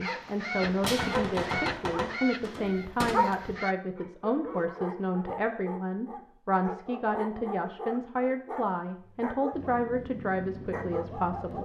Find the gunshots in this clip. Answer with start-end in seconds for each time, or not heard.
0.6-3.1.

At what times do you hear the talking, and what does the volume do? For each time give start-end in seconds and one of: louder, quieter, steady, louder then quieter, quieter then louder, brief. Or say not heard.
0.0-11.5 steady.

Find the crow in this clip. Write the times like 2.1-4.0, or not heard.
0.0-3.8.